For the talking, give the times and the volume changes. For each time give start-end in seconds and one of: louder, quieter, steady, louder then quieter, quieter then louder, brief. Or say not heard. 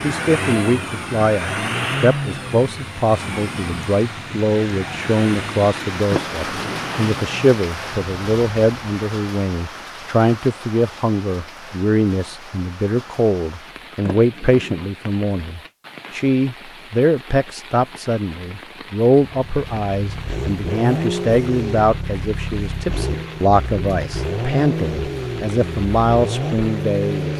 0.0-27.3 steady.